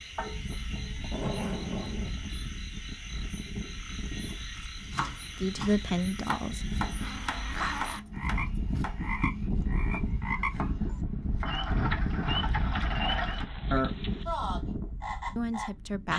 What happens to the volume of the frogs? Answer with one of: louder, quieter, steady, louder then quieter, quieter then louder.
louder.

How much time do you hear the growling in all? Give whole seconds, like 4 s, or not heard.
5 s.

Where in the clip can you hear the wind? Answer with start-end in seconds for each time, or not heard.
0.1-16.1.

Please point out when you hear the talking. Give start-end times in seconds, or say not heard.
5.4-6.6, 15.3-16.1.